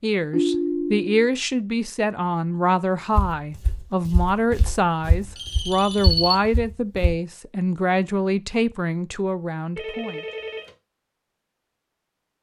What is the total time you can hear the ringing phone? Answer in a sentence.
You can hear the ringing phone for 3 seconds altogether.